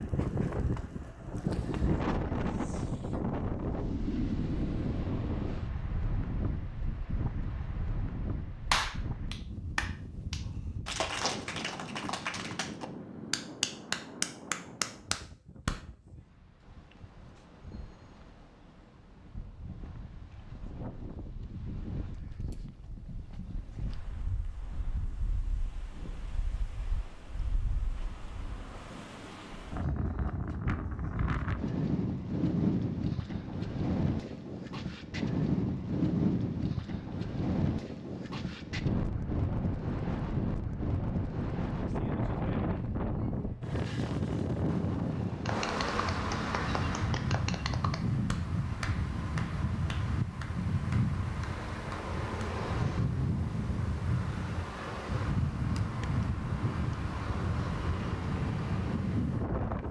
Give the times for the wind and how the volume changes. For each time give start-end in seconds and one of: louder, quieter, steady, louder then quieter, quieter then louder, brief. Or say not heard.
0.0-59.8 quieter then louder.